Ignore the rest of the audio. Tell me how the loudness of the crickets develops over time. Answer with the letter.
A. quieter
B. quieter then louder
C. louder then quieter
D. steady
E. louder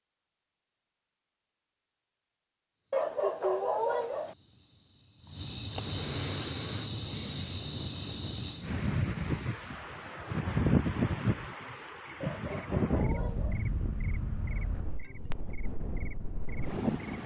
C.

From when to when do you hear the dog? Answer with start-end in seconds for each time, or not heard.
2.9-4.3, 12.2-13.6.